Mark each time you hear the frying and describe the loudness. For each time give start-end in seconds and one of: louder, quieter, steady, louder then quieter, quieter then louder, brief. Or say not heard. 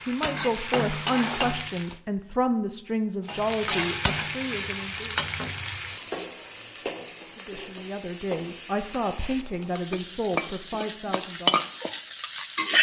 0.0-1.9 brief
3.2-12.7 quieter then louder.